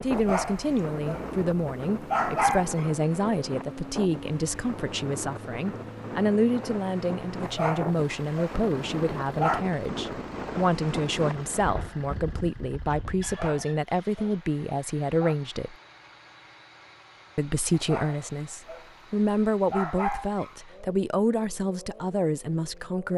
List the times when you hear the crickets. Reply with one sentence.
The crickets can't be heard in this clip.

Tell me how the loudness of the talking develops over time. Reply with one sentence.
The loudness of the talking stays about the same.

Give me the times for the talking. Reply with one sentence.
You can hear the talking from 0.0 to 15.8 s and from 17.4 to 23.1 s.